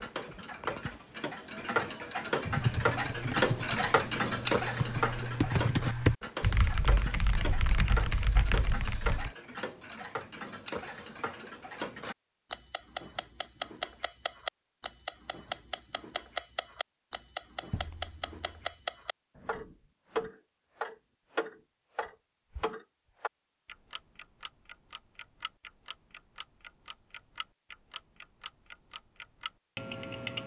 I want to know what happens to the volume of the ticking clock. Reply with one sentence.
The loudness of the ticking clock goes down.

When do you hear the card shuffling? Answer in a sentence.
You can hear the card shuffling from 17.7 to 18.8 s.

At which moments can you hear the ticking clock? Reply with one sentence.
You can hear the ticking clock from 0.0 to 30.4 s.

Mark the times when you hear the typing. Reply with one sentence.
The typing can be heard from 2.5 to 9.3 s.